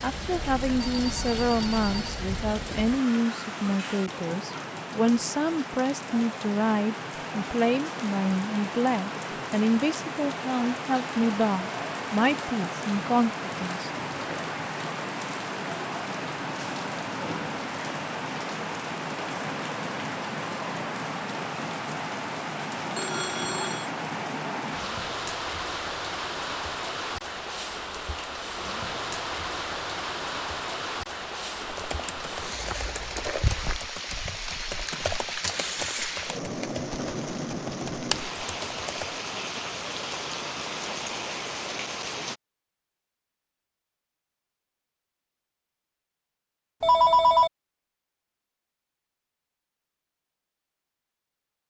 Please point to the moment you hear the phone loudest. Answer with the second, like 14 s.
47 s.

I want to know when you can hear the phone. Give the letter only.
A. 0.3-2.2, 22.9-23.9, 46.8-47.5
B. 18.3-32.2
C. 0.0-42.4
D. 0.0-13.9
A.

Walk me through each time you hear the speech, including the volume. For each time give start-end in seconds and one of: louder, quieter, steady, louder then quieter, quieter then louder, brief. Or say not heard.
0.0-13.9 steady.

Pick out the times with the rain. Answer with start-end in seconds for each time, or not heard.
0.0-42.4.